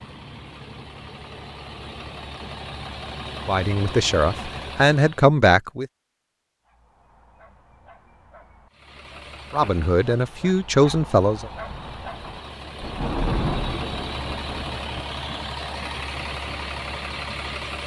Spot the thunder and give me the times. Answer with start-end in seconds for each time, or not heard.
11.7-15.1.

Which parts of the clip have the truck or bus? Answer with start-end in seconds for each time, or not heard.
0.0-5.2, 8.7-17.8.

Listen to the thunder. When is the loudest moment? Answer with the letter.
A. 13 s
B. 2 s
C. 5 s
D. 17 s
A.